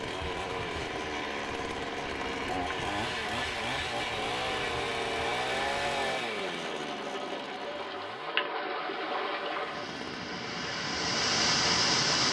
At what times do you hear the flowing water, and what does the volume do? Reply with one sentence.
You can hear the flowing water from 0.0 to 12.2 s, getting louder.